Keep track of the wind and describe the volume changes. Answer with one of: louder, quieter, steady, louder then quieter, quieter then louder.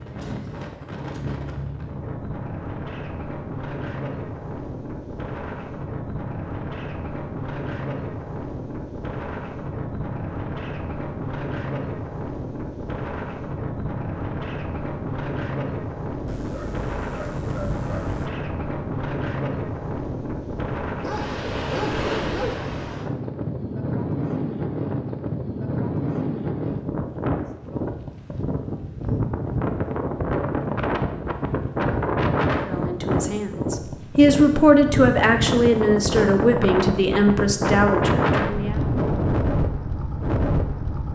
louder.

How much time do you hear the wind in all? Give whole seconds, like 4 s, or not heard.
41 s.